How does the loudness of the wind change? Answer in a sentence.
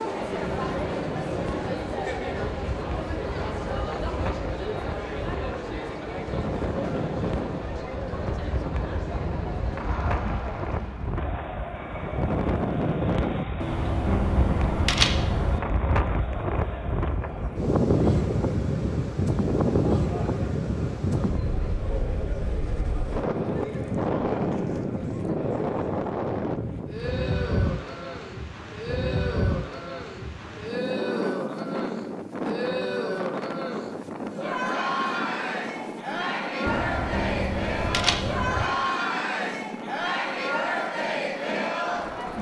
The volume of the wind goes up, then down.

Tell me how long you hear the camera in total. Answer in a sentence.
The camera can be heard for 4 seconds in total.